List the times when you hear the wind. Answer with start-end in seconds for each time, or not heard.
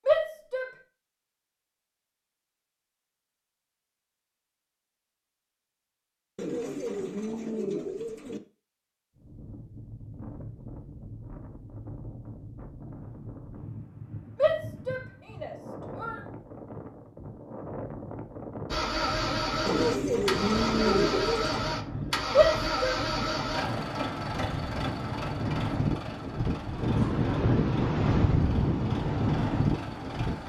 9.2-30.4.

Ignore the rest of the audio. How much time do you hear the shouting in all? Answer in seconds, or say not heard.
3 s.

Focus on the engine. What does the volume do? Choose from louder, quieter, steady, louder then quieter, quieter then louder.
quieter.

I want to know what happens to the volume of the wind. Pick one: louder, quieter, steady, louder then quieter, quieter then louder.
louder.